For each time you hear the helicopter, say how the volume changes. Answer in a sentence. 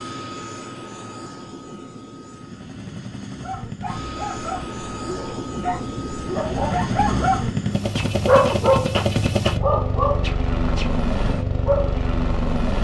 The helicopter can be heard from 0.0 to 12.7 s, getting louder.